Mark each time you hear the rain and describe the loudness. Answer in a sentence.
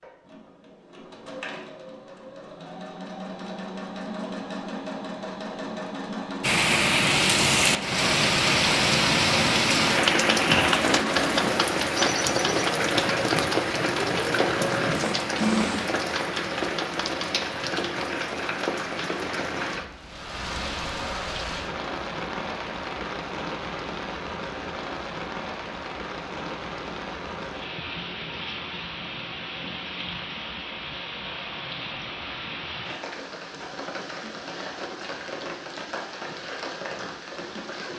You can hear the rain from 6.4 to 37.9 s, getting quieter.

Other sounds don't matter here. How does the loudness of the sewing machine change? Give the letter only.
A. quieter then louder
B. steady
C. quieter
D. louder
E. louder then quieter
D.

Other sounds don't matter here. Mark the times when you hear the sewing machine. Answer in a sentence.
You can hear the sewing machine from 0.0 to 16.0 s.